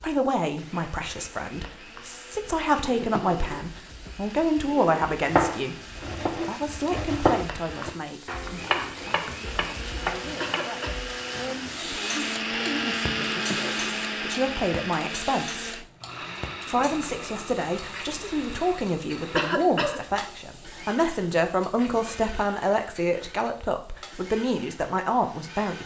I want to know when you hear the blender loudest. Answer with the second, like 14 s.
13 s.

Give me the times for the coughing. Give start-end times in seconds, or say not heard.
10.4-10.9, 19.4-20.2.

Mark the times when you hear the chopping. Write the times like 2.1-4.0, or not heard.
5.2-10.7.